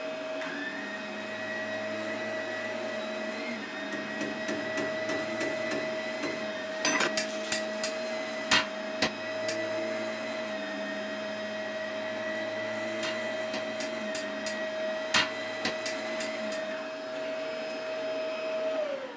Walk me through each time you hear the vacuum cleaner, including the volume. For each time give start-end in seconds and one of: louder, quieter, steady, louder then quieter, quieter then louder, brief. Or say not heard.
0.0-19.1 steady.